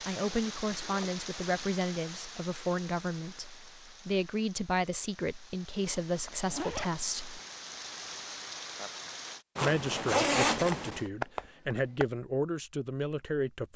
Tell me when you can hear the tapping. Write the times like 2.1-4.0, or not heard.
10.6-12.1.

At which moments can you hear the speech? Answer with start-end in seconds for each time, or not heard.
0.1-7.4, 9.6-13.7.